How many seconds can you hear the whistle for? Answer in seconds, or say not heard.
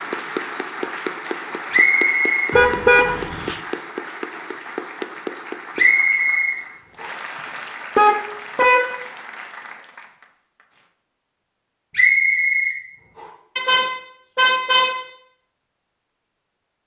4 s.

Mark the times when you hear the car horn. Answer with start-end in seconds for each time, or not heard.
2.5-3.6, 8.0-9.0, 13.6-15.1.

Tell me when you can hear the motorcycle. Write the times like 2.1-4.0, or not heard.
not heard.